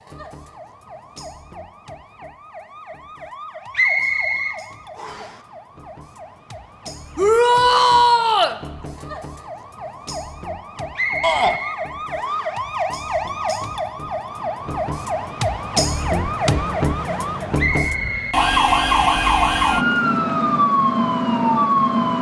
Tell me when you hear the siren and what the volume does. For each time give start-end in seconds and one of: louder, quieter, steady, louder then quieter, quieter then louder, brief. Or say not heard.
0.0-22.1 louder.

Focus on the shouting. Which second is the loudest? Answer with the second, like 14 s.
8 s.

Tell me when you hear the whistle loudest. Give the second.
4 s.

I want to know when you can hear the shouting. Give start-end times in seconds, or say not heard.
7.2-8.6, 11.2-11.6.